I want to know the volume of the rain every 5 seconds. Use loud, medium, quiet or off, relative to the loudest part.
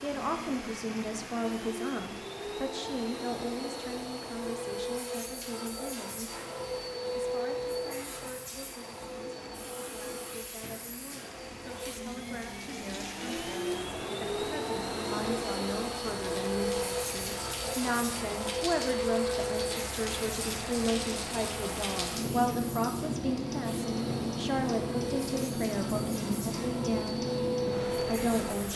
medium, quiet, medium, medium, loud, loud.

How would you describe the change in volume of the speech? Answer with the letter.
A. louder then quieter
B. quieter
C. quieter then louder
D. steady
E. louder
C.